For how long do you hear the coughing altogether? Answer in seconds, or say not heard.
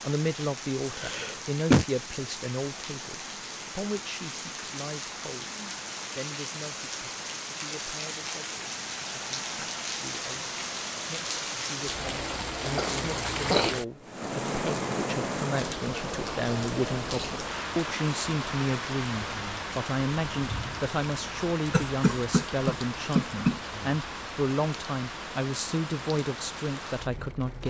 4 s.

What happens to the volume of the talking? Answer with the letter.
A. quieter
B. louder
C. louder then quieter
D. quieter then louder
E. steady
D.